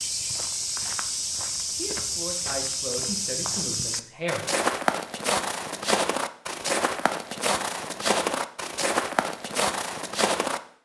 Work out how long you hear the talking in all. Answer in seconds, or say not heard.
3 s.